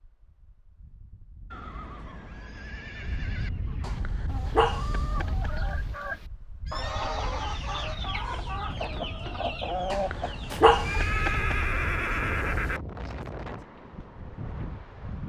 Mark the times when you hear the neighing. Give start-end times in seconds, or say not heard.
1.5-3.5, 6.7-8.3, 10.5-12.8.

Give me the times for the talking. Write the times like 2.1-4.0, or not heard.
not heard.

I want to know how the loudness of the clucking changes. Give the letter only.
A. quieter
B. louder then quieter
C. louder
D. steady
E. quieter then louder
C.